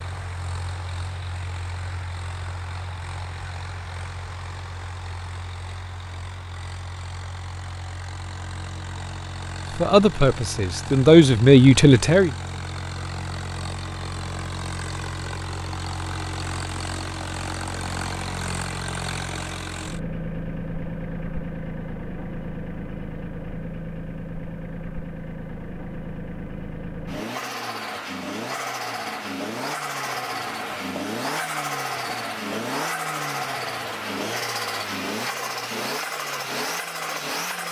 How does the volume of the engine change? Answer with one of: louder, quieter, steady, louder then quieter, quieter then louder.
louder.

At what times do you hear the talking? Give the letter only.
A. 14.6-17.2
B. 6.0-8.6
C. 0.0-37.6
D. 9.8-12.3
D.